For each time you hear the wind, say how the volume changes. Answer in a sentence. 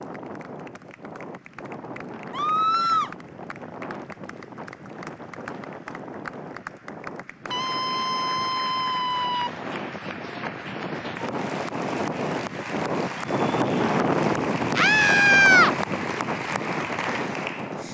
The wind can be heard from 0.0 to 17.8 s, getting louder.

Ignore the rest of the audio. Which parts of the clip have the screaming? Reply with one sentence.
The screaming can be heard from 2.3 to 3.1 s, from 7.5 to 9.5 s and from 14.8 to 15.8 s.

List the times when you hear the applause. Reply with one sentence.
The applause can be heard from 0.0 to 17.8 s.